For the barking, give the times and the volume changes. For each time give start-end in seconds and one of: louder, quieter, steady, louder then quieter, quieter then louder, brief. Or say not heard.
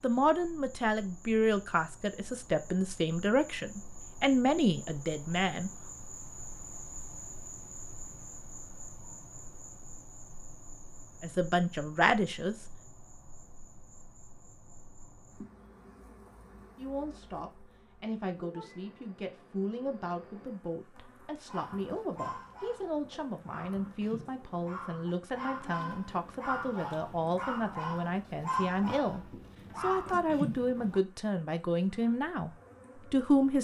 21.4-31.0 louder.